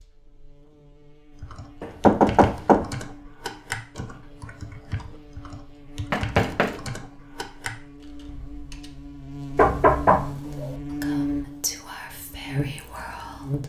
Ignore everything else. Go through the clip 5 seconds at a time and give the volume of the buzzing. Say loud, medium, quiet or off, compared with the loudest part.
quiet, medium, loud.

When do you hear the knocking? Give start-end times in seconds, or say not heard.
1.8-2.9, 6.1-6.8, 9.6-10.8.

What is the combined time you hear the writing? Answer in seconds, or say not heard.
not heard.